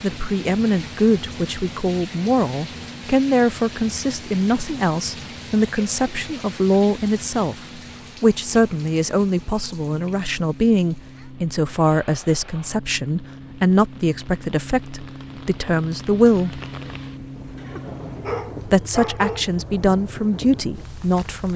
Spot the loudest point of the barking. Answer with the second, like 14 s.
19 s.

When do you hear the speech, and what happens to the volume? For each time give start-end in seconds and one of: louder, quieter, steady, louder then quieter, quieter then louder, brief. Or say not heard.
0.0-16.6 steady
18.6-21.5 brief.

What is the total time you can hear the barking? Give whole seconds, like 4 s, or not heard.
2 s.